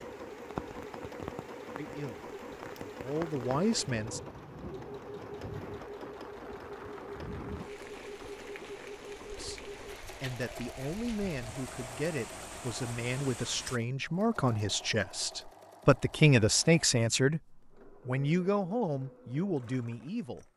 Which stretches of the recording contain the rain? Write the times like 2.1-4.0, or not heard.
0.0-13.8.